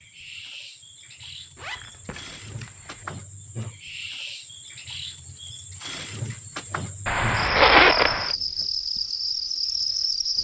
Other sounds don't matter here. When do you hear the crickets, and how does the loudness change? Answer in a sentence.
The crickets can be heard from 0.0 to 10.3 s, getting louder.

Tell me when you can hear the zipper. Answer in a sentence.
The zipper can be heard from 1.6 to 3.0 s and from 7.0 to 8.3 s.